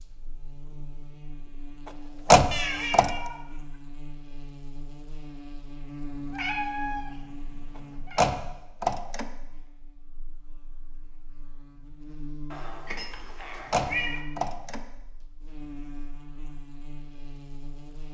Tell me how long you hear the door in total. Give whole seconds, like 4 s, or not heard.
3 s.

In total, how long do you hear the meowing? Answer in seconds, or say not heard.
5 s.